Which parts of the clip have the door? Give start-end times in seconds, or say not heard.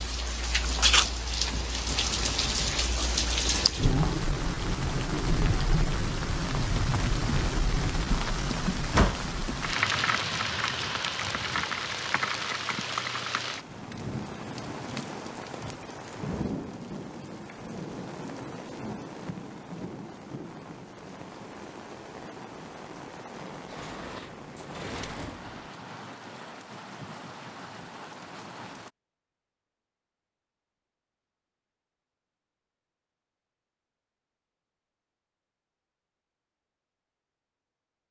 8.8-9.2, 23.7-25.4.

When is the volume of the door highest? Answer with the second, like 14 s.
9 s.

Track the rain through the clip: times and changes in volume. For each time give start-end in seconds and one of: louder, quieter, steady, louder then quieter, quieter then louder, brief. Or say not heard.
0.0-28.9 quieter.